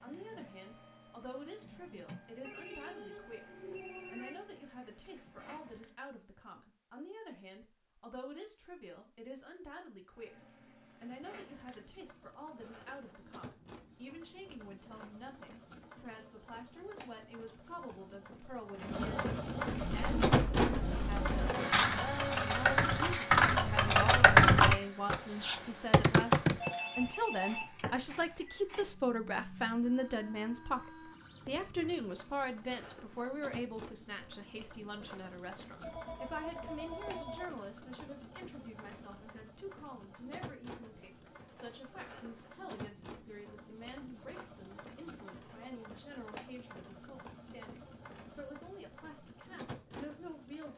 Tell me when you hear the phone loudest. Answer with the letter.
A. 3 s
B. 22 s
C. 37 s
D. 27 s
D.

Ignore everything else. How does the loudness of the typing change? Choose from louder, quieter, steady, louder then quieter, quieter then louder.
louder then quieter.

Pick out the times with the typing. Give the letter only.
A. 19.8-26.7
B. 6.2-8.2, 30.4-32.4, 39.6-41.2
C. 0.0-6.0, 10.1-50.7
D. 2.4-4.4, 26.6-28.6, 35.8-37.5
A.